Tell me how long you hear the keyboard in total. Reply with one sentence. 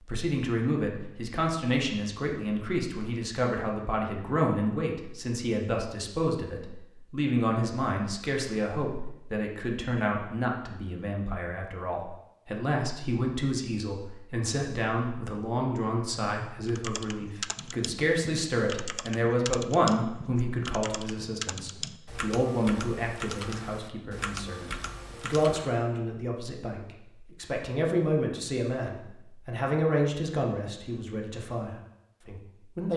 You can hear the keyboard for 9 seconds altogether.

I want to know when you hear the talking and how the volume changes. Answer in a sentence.
The talking can be heard from 0.1 to 32.9 s, at a steady volume.